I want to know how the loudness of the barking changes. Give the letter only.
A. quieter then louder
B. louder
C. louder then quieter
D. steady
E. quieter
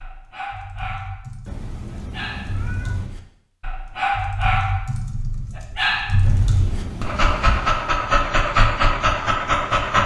B.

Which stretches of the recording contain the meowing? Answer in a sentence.
The meowing can be heard from 1.4 to 3.1 s and from 6.2 to 7.7 s.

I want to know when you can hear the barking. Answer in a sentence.
The barking can be heard from 0.0 to 10.0 s.